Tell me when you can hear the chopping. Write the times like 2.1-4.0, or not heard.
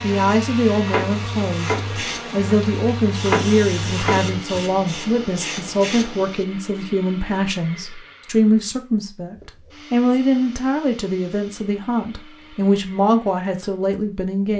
0.0-4.6.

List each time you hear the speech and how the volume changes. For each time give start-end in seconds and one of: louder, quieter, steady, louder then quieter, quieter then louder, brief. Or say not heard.
0.0-14.5 steady.